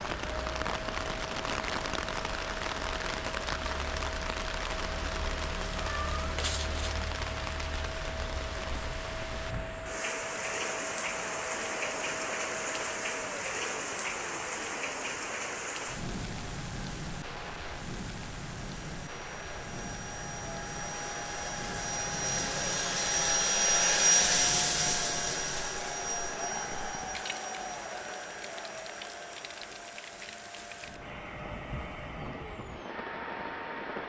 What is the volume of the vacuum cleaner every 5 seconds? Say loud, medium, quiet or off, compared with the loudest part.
quiet, quiet, quiet, quiet, loud, medium, quiet.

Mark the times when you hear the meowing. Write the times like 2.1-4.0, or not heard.
5.8-7.0.